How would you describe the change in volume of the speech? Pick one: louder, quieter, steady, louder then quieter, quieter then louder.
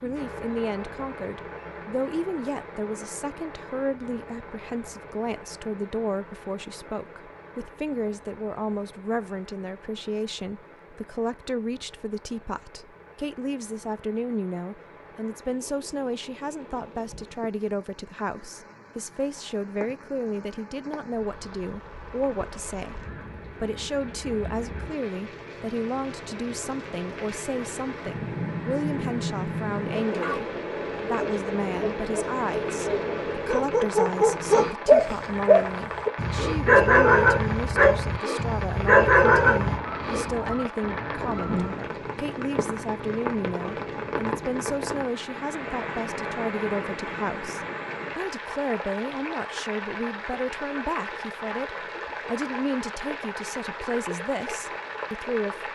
steady.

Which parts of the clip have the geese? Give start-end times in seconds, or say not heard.
39.5-41.9.